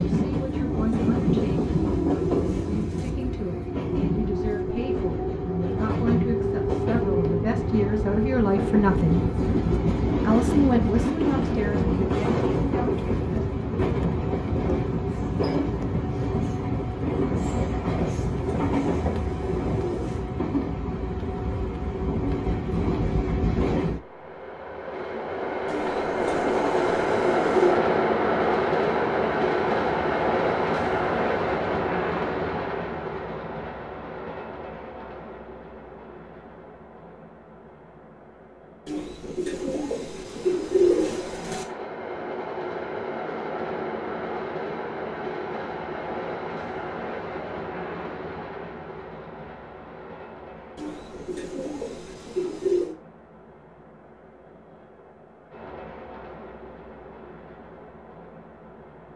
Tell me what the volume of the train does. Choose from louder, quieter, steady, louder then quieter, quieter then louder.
quieter.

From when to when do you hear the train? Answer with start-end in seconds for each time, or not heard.
0.0-59.1.